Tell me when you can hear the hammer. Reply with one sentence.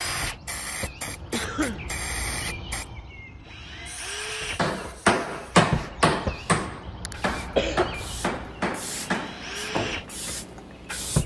The hammer can be heard from 4.5 to 10.3 s.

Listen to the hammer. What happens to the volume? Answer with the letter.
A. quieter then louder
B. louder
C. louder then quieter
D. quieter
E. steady
D.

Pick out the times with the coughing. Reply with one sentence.
You can hear the coughing from 1.3 to 1.9 s and from 7.0 to 7.9 s.